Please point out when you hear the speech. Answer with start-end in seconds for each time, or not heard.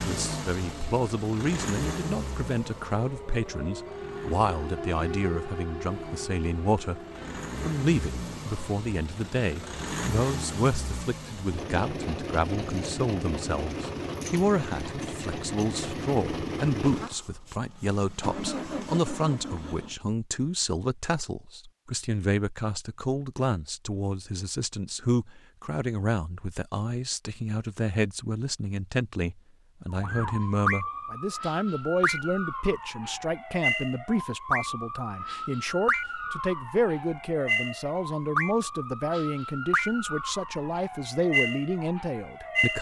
0.0-7.0, 7.7-42.7.